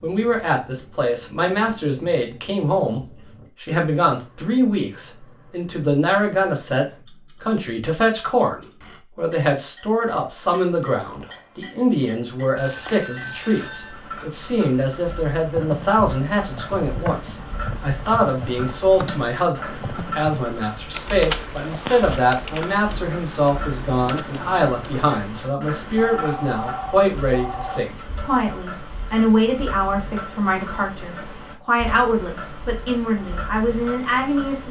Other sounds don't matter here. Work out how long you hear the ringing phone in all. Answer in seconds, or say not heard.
3 s.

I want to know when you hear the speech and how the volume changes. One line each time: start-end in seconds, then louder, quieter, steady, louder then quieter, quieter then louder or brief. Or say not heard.
0.0-34.6 steady.